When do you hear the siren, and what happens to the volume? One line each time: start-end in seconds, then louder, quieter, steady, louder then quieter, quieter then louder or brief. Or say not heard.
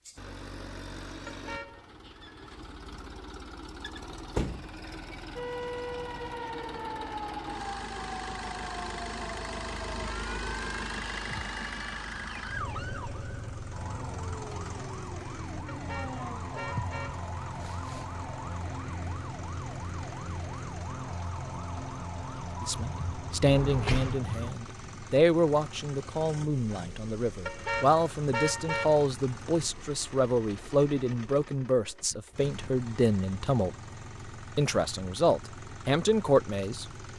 5.3-24.6 steady.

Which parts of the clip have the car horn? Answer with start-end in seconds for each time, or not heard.
1.2-1.9, 15.7-17.3, 27.4-29.1.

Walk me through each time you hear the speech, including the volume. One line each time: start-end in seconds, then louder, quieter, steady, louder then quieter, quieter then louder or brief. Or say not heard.
22.6-33.8 steady
34.5-36.9 brief.